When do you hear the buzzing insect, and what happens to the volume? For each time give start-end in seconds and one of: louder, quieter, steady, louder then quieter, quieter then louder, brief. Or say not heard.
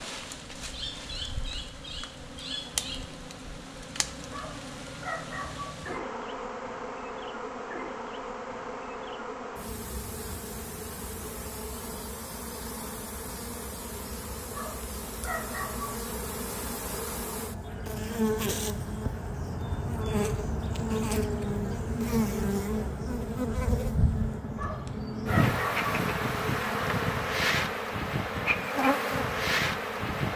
0.0-30.3 louder.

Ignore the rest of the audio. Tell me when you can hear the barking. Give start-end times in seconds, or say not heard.
4.3-5.8, 14.5-16.1, 24.6-25.9.